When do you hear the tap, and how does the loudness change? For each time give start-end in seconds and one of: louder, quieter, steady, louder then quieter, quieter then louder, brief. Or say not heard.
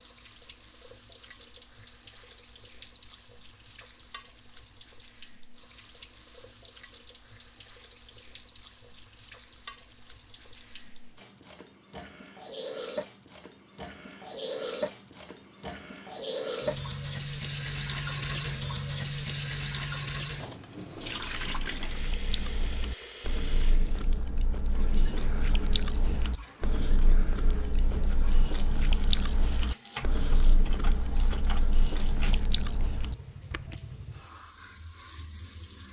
0.0-35.8 louder then quieter.